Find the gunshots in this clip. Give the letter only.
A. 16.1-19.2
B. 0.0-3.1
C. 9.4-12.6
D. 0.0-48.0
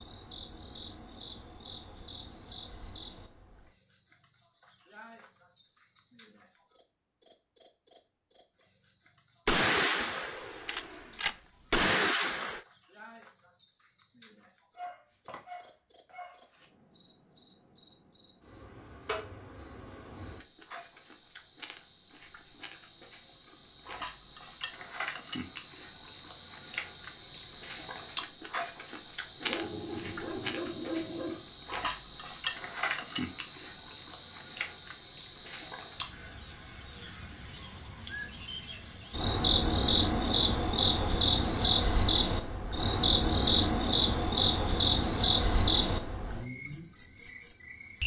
C.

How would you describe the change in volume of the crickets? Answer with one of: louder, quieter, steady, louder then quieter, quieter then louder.
louder.